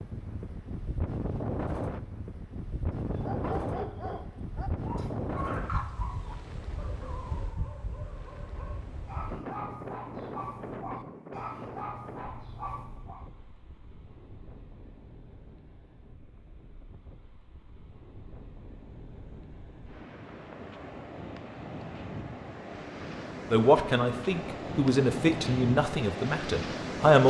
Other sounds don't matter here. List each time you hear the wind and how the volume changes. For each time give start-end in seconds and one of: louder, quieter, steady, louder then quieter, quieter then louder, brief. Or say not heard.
0.0-27.2 quieter then louder.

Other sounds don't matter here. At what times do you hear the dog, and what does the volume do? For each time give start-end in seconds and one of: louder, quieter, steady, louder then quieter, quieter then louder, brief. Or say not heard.
3.1-13.2 quieter then louder.